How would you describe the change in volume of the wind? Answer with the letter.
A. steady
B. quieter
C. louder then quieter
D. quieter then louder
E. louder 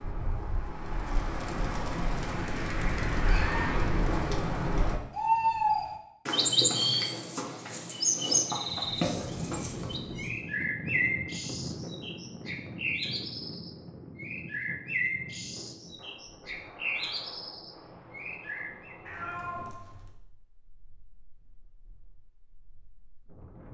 B.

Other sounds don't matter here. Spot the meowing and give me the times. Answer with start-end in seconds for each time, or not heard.
3.2-3.9, 8.8-10.3, 19.1-20.1.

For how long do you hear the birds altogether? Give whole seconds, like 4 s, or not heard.
19 s.